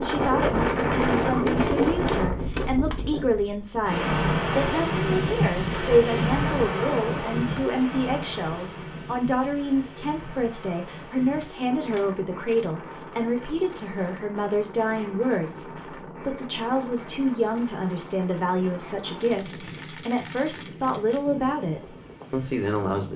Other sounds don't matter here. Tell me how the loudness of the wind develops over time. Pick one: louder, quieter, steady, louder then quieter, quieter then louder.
quieter.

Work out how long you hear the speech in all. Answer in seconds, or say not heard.
23 s.